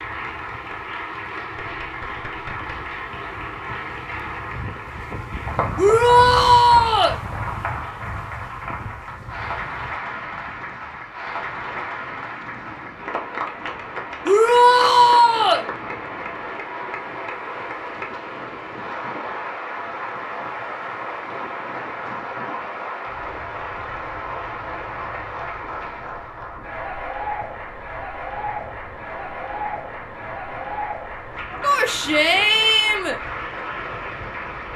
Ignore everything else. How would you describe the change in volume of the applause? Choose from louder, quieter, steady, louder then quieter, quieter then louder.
steady.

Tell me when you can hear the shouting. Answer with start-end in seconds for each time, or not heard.
5.8-7.2, 14.2-15.7, 31.6-33.1.